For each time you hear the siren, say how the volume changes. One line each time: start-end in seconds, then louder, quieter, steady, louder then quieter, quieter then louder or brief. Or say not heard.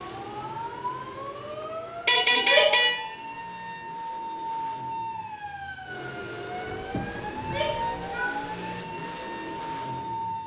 0.0-10.4 steady.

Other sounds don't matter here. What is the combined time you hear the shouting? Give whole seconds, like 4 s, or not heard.
2 s.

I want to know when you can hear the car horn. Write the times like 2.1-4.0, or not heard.
2.0-3.0, 6.7-8.1.